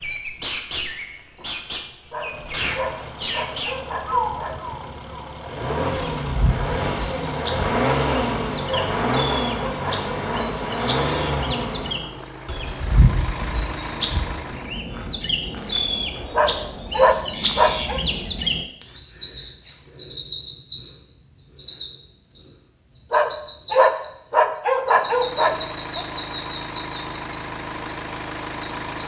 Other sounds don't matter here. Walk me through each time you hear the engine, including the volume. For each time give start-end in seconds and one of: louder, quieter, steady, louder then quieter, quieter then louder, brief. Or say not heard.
2.2-14.8 louder then quieter
24.9-29.0 steady.